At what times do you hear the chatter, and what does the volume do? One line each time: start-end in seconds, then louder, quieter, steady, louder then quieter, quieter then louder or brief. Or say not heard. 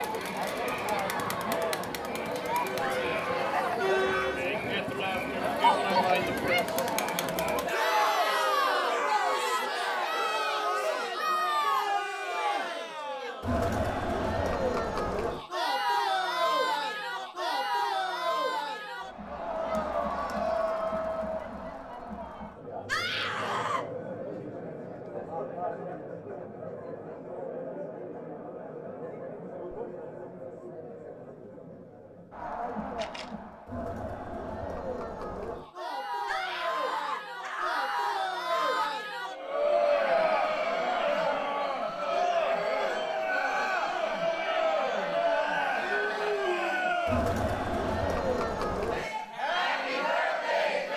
0.0-50.9 quieter then louder.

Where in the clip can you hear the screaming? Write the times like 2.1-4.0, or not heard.
2.8-4.3, 22.9-23.9, 36.2-39.0.